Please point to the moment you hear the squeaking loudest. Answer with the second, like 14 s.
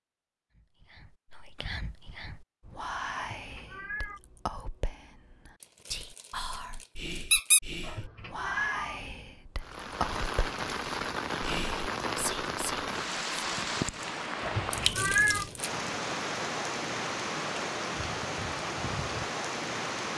7 s.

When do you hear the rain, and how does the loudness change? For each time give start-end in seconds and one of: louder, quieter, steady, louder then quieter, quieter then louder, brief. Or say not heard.
9.6-20.1 steady.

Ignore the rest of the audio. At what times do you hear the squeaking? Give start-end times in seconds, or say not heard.
5.8-7.6, 14.7-15.7.